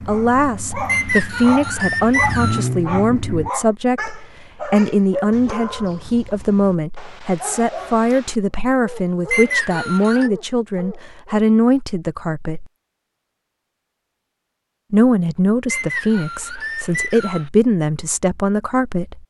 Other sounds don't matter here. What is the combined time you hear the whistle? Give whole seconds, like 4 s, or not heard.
5 s.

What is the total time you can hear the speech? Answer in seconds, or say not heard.
17 s.